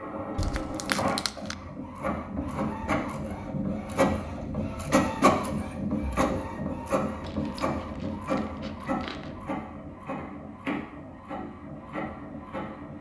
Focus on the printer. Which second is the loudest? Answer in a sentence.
The volume of the printer peaks at 5 seconds.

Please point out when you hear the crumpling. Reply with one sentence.
The crumpling can be heard from 0.3 to 1.6 s and from 7.2 to 9.3 s.